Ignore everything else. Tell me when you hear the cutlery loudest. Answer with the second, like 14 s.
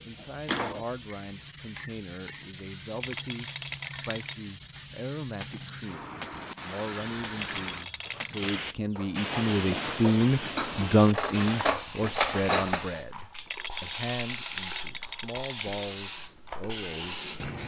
12 s.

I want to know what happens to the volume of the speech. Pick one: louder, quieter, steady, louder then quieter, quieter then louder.
louder then quieter.